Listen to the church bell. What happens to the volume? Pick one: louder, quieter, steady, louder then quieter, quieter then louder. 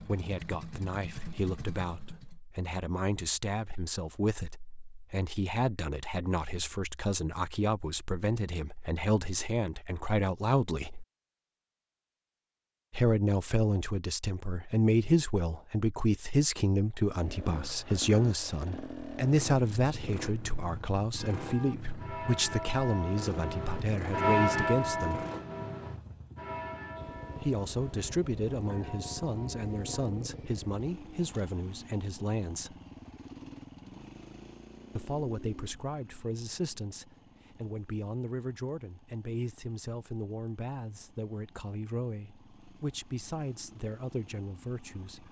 louder then quieter.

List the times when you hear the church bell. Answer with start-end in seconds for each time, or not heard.
21.1-30.1.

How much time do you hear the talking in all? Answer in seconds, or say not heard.
39 s.